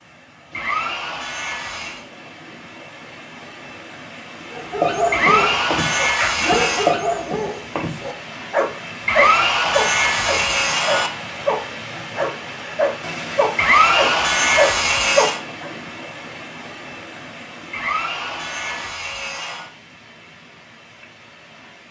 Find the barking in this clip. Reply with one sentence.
The barking can be heard from 4.5 to 15.7 s.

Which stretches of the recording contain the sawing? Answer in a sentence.
The sawing can be heard from 0.5 to 2.0 s, from 5.1 to 7.0 s, from 9.1 to 11.1 s, from 13.6 to 15.4 s and from 17.7 to 19.7 s.